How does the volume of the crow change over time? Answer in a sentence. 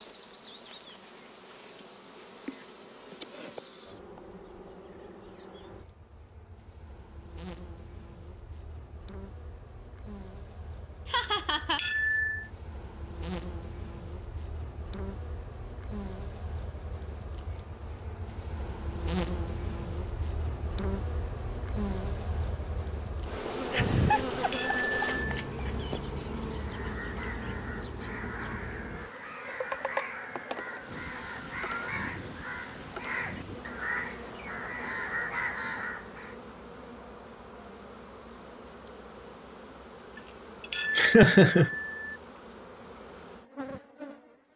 The volume of the crow goes up.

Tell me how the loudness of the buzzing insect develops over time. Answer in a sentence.
The volume of the buzzing insect goes up, then down.